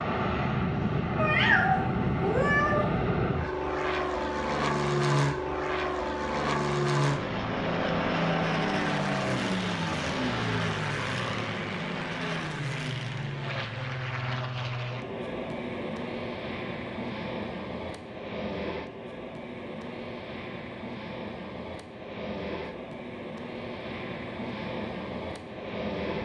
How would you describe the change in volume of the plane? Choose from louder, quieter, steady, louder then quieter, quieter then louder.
quieter.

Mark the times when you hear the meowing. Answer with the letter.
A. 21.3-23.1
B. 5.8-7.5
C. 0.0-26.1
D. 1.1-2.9
D.